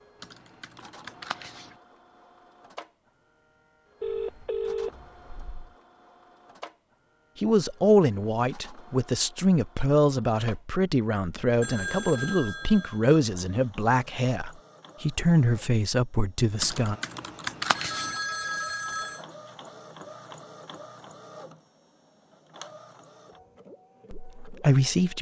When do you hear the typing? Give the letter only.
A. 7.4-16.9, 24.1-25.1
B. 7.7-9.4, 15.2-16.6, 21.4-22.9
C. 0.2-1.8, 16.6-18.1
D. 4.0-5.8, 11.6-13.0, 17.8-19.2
C.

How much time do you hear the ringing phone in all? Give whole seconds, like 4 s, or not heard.
5 s.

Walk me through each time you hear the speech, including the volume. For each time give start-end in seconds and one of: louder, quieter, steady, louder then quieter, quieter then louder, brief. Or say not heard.
7.4-16.9 steady
24.1-25.1 brief.